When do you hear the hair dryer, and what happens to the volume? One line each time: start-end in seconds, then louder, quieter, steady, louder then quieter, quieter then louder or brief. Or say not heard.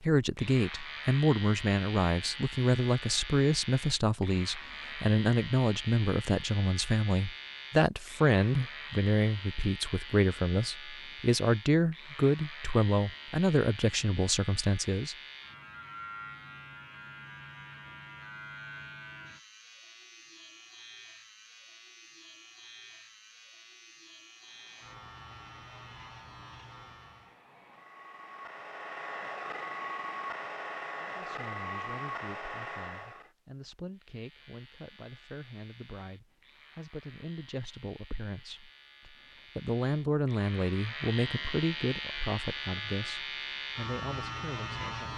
24.4-33.3 louder.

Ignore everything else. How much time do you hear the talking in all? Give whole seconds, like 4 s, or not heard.
29 s.